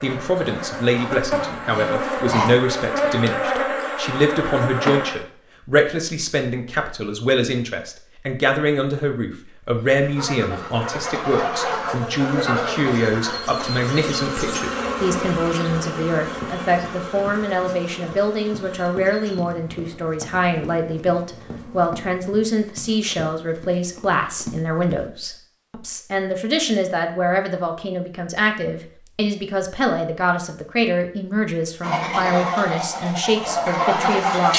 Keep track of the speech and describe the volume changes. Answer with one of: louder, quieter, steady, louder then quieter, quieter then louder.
steady.